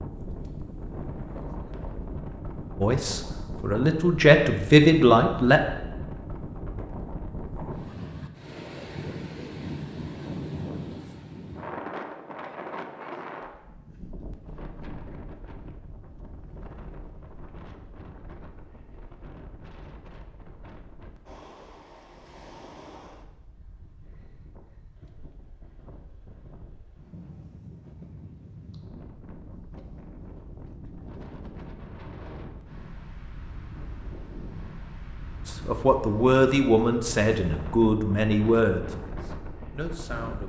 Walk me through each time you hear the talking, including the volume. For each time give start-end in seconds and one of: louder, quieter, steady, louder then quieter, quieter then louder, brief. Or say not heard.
2.8-5.6 brief
35.5-40.4 quieter.